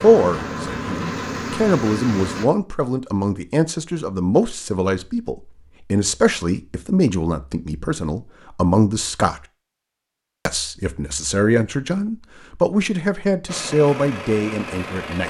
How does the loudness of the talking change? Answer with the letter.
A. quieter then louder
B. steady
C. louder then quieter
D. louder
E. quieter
B.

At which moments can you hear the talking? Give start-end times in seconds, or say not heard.
0.0-9.4, 10.4-15.2.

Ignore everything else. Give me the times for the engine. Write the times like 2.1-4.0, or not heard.
0.0-2.5, 13.4-15.2.